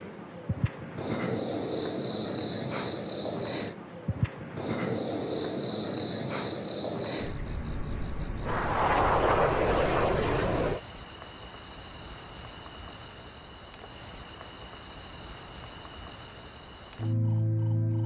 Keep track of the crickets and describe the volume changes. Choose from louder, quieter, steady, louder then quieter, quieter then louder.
quieter then louder.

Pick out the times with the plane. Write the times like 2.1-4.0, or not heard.
8.4-10.8.